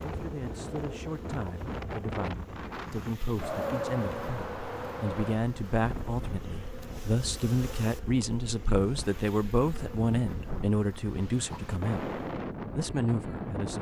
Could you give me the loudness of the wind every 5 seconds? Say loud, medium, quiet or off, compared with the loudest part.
loud, medium, loud.